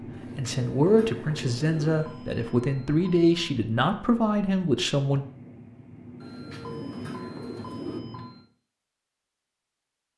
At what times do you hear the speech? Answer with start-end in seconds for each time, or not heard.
0.3-5.2.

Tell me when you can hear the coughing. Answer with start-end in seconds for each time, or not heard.
not heard.